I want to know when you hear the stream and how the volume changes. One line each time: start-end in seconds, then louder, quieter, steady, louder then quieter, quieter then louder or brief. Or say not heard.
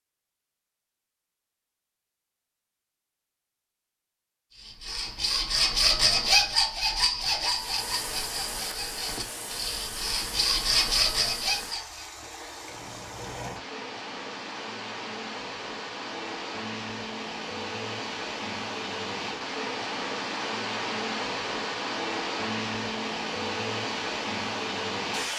7.4-25.3 louder.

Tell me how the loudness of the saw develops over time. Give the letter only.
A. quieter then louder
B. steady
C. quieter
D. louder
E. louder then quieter
A.